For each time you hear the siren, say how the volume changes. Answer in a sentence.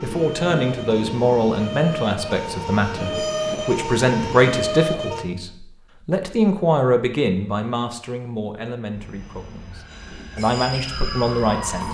You can hear the siren from 0.0 to 5.2 s, getting louder; and briefly from 8.9 to 11.8 s.